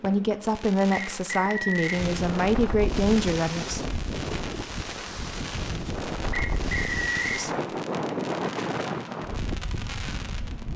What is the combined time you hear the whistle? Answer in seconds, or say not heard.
2 s.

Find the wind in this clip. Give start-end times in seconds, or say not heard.
1.9-10.7.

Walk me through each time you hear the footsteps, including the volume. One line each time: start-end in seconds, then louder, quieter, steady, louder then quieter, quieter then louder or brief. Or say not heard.
not heard.